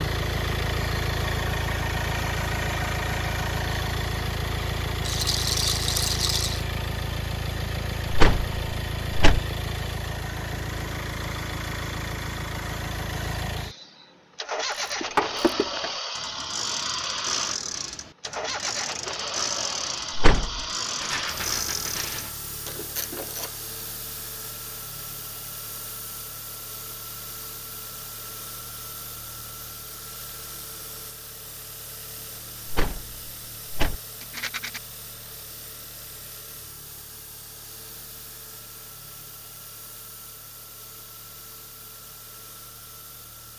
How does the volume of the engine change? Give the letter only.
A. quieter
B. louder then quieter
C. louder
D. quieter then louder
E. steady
A.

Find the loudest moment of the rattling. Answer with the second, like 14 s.
6 s.